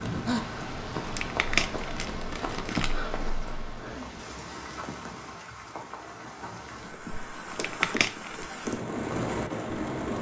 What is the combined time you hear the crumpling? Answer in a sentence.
The crumpling can be heard for 3 seconds in total.